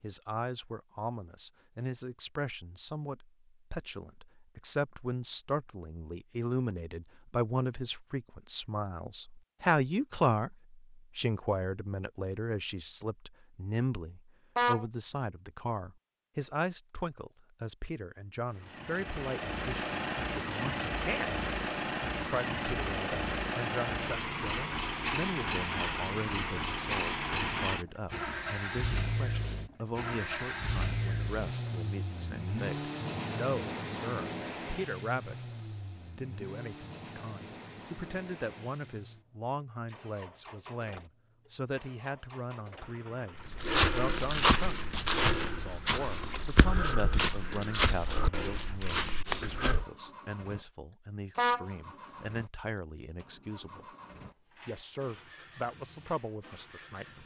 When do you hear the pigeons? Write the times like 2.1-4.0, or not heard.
not heard.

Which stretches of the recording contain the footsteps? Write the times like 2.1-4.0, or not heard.
43.4-49.9.